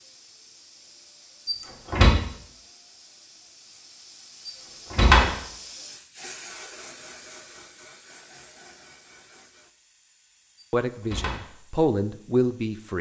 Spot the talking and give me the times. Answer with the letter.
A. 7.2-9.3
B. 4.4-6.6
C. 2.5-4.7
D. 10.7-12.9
D.